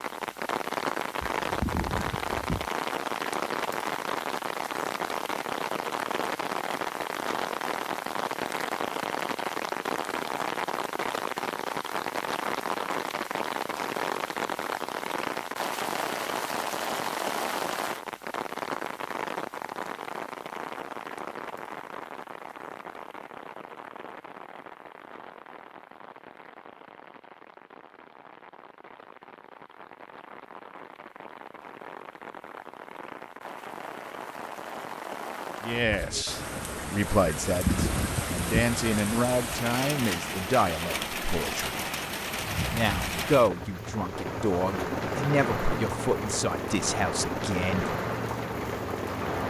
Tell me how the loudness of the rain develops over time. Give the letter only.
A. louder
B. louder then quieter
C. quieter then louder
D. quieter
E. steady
C.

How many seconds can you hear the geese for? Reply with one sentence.
The geese can be heard for 3 seconds in total.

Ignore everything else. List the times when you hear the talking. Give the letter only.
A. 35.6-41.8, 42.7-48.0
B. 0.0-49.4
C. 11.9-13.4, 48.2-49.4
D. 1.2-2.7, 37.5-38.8
A.